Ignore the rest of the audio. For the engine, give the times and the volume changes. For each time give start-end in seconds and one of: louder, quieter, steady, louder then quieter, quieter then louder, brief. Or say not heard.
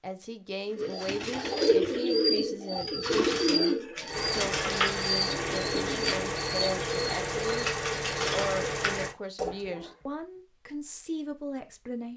4.0-9.2 steady.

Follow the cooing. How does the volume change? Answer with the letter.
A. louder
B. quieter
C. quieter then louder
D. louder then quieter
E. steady
B.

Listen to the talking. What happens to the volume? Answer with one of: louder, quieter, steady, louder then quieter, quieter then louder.
steady.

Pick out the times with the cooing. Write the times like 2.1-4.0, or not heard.
0.8-10.2.